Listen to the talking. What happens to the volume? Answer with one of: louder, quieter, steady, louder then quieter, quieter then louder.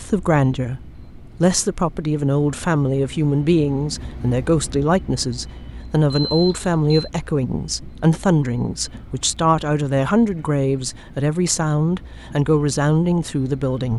steady.